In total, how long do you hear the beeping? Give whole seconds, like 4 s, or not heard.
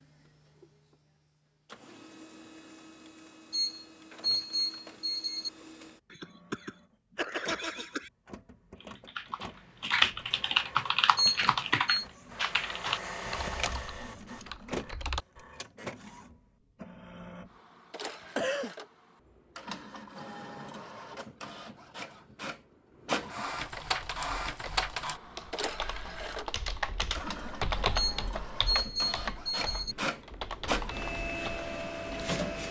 5 s.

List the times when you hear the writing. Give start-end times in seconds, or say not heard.
not heard.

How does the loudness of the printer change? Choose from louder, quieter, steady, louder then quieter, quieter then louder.
louder.